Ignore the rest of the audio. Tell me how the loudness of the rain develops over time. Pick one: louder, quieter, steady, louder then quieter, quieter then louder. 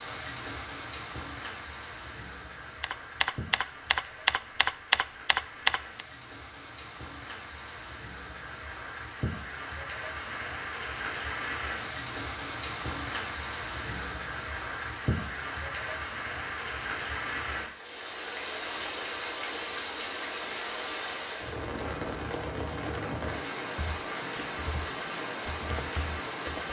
louder.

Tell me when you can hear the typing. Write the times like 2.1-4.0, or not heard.
2.8-6.0, 23.8-26.6.